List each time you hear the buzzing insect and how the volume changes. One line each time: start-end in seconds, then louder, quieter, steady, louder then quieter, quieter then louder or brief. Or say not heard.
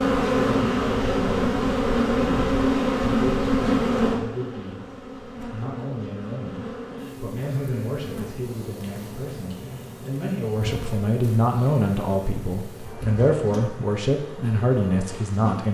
0.0-15.6 quieter.